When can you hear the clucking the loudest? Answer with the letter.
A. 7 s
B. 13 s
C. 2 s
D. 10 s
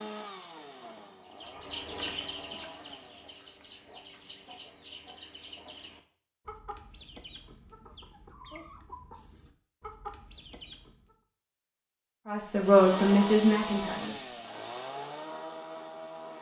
C.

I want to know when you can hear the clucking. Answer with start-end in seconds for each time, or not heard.
1.2-11.2.